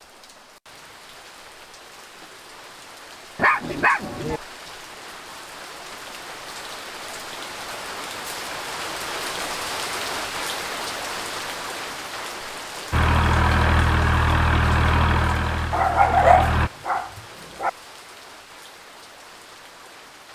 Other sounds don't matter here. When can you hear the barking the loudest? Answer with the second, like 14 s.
16 s.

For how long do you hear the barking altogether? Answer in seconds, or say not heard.
3 s.